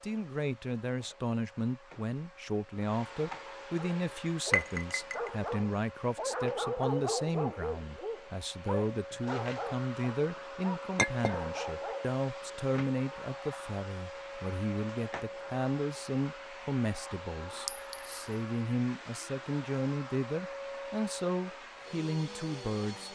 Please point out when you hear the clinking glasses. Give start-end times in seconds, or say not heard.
4.5-5.3, 10.9-11.3, 17.6-18.2.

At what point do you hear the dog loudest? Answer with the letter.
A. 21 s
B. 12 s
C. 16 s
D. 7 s
D.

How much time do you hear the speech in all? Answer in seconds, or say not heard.
23 s.